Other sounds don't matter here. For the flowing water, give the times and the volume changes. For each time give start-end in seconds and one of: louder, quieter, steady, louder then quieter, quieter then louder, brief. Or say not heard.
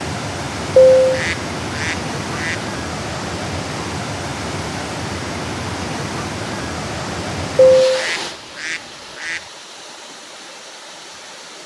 0.0-11.6 quieter.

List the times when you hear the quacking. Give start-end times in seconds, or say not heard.
0.8-2.5, 7.8-9.4.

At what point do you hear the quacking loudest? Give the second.
1 s.